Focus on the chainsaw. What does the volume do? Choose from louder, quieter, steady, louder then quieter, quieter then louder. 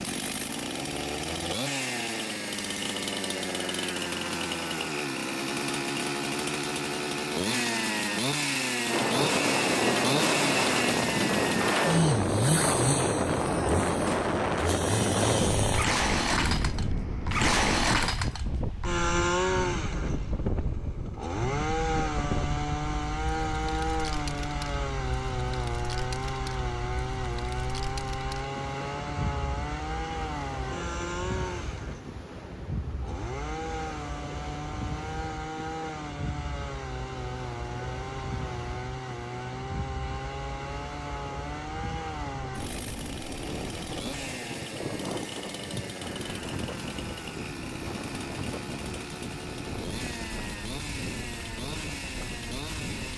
quieter.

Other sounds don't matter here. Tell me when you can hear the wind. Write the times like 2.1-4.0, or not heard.
8.8-53.1.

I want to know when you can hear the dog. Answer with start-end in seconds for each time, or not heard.
not heard.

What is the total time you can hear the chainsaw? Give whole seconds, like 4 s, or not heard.
53 s.